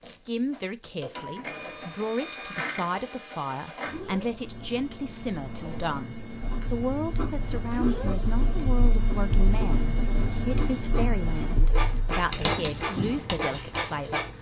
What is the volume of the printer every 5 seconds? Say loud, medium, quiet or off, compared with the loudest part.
medium, loud, loud.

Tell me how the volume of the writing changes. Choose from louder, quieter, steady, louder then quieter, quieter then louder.
louder.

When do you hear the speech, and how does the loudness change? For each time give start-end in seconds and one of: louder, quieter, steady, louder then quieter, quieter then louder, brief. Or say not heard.
0.0-14.2 steady.